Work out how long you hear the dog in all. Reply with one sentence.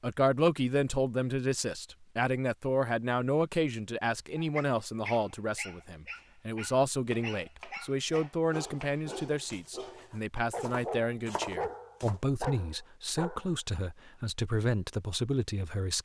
The dog can be heard for 9 seconds in total.